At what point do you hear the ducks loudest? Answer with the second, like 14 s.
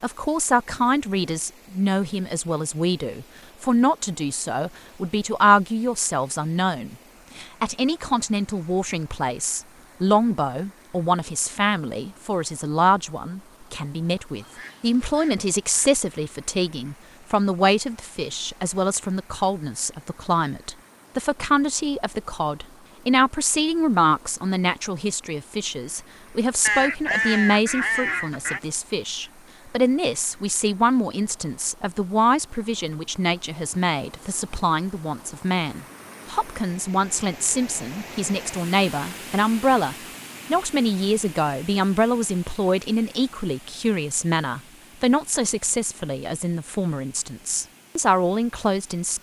27 s.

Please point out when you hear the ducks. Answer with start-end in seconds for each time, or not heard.
14.4-16.0, 26.6-28.6.